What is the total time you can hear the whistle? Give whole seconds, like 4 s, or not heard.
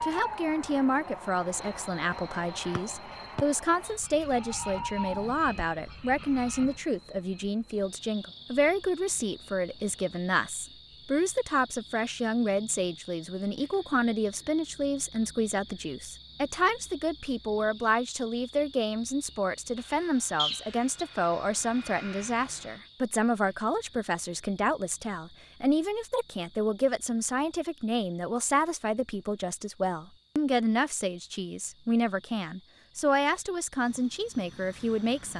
2 s.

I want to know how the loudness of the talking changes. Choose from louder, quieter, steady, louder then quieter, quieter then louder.
steady.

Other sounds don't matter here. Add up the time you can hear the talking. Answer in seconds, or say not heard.
35 s.